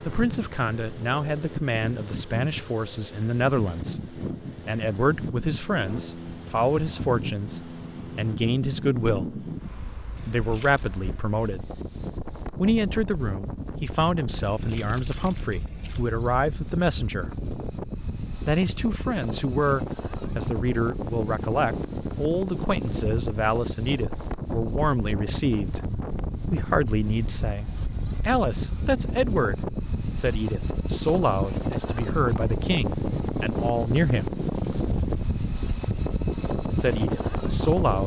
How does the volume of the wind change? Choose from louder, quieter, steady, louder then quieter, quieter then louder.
louder.